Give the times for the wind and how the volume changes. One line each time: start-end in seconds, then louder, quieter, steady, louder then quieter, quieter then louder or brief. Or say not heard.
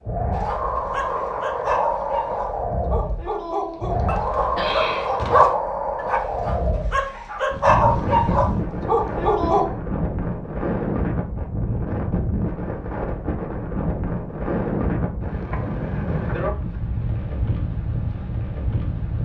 0.0-19.2 steady.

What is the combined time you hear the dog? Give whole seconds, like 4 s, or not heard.
9 s.